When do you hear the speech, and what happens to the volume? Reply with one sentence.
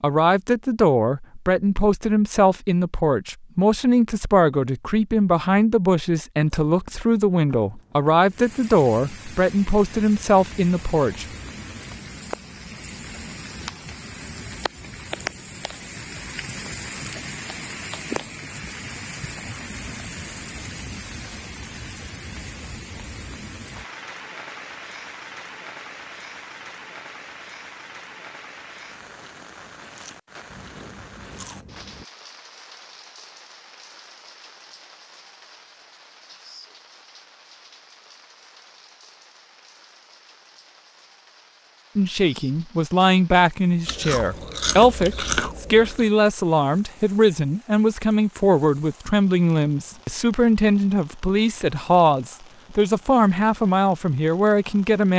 The speech can be heard from 0.0 to 11.2 s, at a steady volume; and from 42.0 to 55.1 s, at a steady volume.